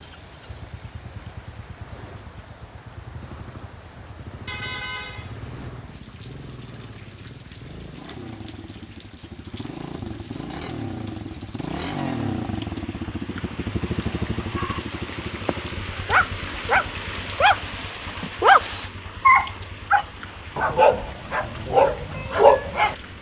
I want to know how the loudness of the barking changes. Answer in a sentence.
The loudness of the barking goes up.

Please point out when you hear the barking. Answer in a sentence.
The barking can be heard from 14.5 to 22.9 s.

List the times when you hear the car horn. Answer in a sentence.
You can hear the car horn from 4.5 to 5.7 s.